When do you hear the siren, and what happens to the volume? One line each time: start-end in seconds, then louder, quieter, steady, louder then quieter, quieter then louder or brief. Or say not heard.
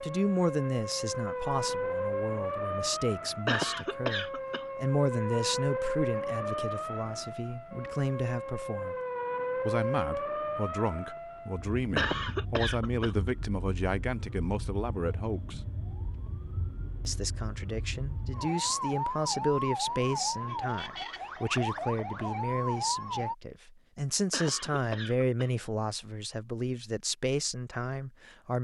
0.0-23.4 quieter then louder.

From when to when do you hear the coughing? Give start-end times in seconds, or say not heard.
3.5-4.7, 11.9-13.2, 24.3-25.5.